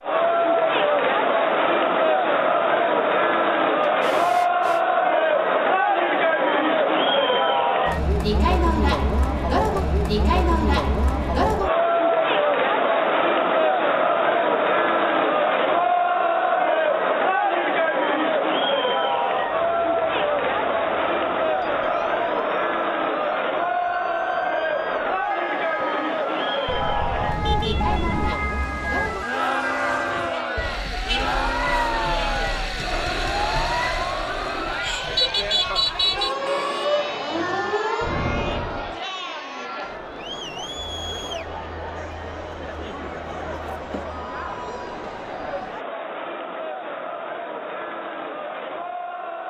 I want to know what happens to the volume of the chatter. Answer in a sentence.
The volume of the chatter goes down.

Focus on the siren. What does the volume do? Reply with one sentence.
The loudness of the siren goes up.